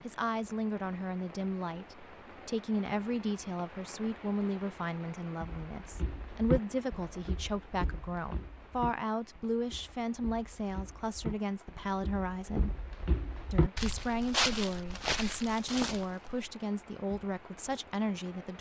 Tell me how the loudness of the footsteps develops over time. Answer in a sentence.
The volume of the footsteps goes down, then up.